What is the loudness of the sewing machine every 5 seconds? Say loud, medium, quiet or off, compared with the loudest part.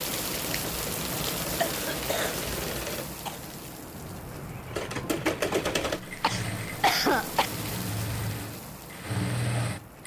medium, loud.